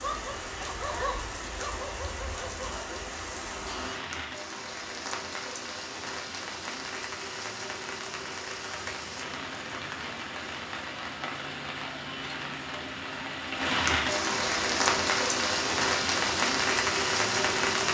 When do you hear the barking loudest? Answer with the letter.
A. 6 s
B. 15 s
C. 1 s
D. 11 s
C.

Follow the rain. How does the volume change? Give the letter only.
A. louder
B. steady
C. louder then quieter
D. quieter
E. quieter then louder
A.